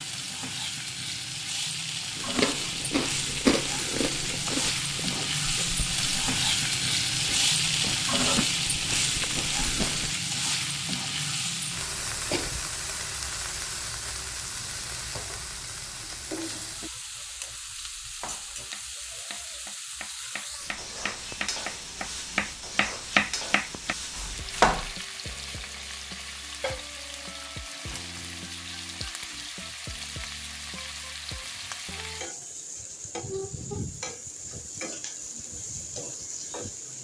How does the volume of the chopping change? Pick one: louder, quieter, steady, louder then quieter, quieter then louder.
louder then quieter.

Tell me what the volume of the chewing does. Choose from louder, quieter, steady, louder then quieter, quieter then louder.
quieter then louder.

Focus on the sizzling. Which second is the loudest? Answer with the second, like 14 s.
8 s.